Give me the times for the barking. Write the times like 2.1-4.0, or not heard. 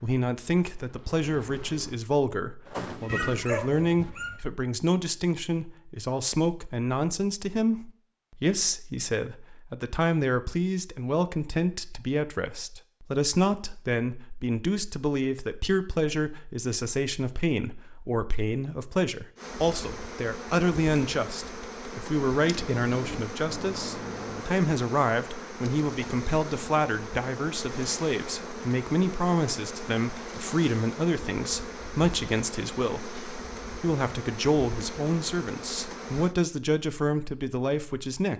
3.1-4.3.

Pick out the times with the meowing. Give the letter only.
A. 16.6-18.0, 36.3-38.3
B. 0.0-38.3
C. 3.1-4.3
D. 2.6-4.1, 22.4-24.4
D.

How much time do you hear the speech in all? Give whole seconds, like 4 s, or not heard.
38 s.